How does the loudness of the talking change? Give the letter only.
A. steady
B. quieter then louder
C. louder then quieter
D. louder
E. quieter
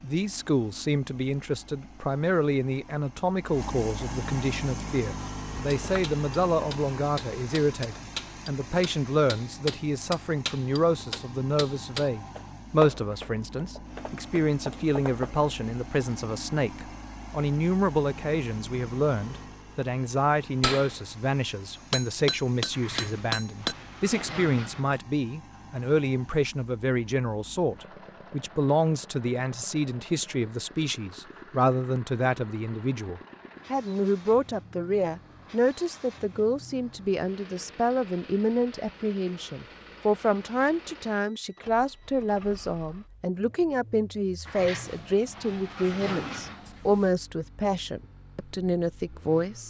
A.